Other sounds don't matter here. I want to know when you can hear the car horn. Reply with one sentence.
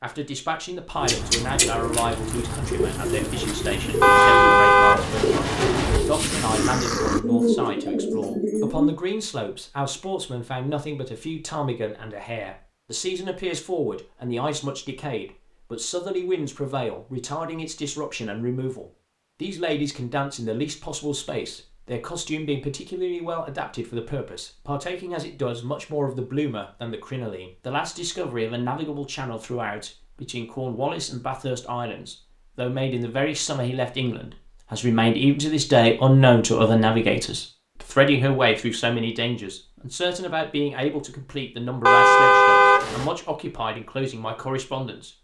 You can hear the car horn from 4.0 to 6.0 s and from 41.9 to 43.1 s.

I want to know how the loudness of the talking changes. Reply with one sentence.
The loudness of the talking goes up.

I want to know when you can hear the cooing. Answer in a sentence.
You can hear the cooing from 0.9 to 8.9 s.